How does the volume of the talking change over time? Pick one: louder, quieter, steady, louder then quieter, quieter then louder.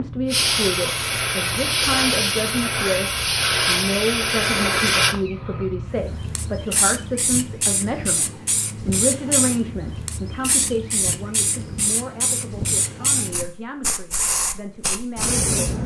quieter.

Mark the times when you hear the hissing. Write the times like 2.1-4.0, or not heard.
0.0-15.8.